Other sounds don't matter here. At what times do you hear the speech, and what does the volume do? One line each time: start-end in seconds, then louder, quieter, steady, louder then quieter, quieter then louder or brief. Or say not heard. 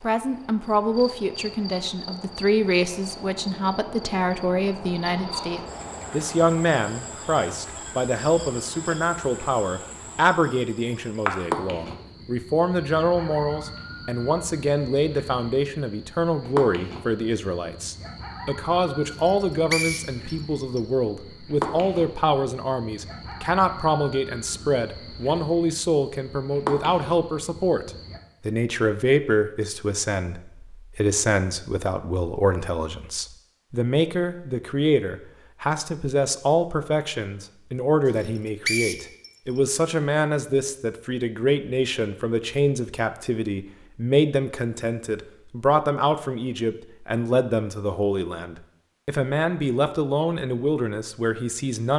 0.0-51.9 steady.